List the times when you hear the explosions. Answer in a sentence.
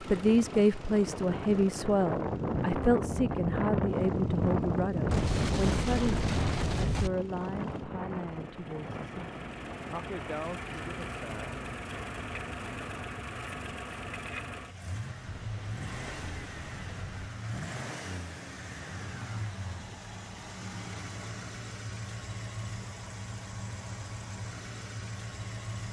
The explosions can be heard from 5.0 to 7.1 s and from 15.2 to 17.2 s.